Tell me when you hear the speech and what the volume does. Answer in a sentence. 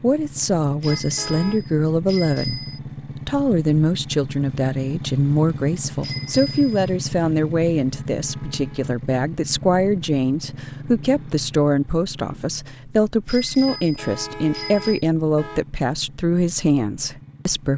The speech can be heard from 0.0 to 17.7 s, at a steady volume.